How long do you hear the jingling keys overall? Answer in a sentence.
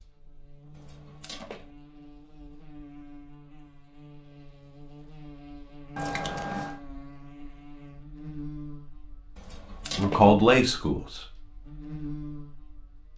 The jingling keys can be heard for 3 seconds in total.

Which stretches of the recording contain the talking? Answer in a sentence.
You can hear the talking from 9.9 to 11.2 s.